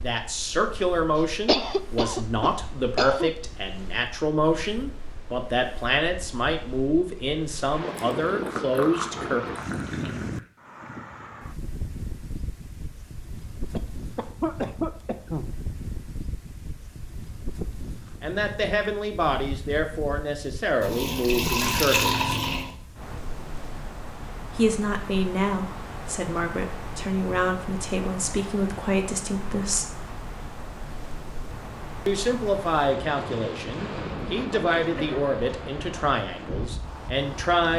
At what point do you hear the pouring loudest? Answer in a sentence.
The volume of the pouring peaks at 22 seconds.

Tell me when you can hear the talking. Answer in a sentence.
You can hear the talking from 0.0 to 9.4 s, from 18.2 to 22.3 s, from 24.6 to 29.9 s and from 32.0 to 37.7 s.